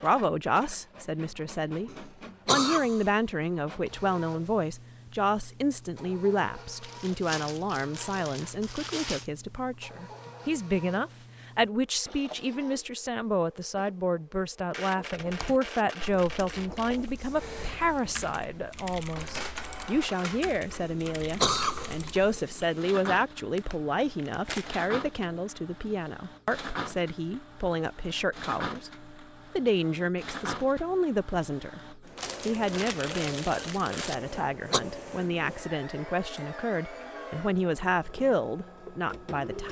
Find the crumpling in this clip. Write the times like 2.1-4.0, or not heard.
6.8-9.3, 23.6-24.8, 32.1-34.1.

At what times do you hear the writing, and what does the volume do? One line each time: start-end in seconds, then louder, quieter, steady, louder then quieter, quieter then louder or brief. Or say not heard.
not heard.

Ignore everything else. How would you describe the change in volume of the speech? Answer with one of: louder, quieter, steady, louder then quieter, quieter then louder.
steady.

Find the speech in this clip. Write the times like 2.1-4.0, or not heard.
0.0-39.6.